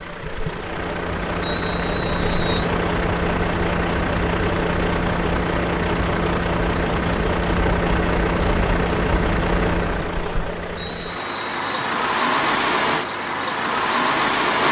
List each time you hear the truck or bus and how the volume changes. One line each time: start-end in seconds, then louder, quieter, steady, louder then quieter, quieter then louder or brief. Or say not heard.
0.0-14.6 steady.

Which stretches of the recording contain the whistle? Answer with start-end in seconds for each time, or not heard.
1.4-2.7, 10.8-11.9.